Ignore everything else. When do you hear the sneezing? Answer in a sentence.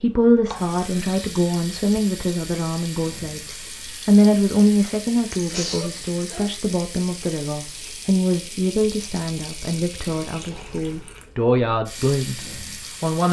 The sneezing can be heard from 5.3 to 6.5 s.